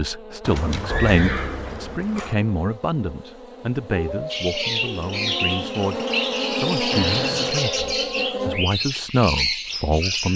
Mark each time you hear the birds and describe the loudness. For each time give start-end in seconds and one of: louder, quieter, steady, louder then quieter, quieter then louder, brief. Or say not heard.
4.3-10.3 steady.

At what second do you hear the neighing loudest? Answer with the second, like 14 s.
1 s.